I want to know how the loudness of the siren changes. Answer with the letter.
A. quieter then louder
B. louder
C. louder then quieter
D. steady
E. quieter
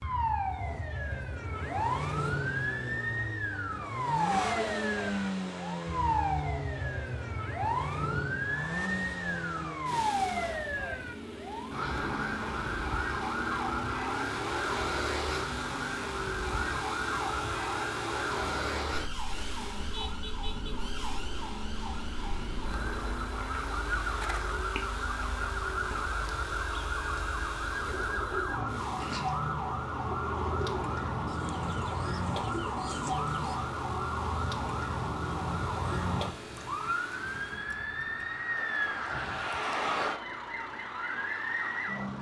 D.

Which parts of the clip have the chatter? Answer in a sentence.
You can't hear the chatter here.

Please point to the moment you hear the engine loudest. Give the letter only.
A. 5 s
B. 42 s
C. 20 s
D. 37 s
A.